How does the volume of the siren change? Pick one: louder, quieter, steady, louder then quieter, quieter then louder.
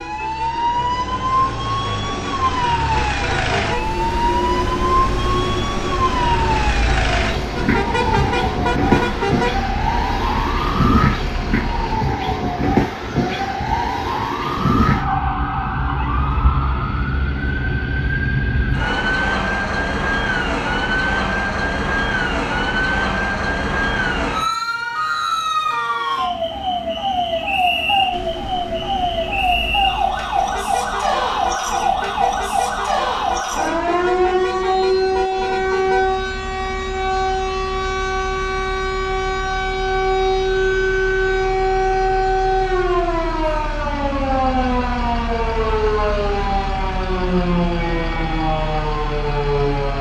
steady.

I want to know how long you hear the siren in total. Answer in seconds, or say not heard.
50 s.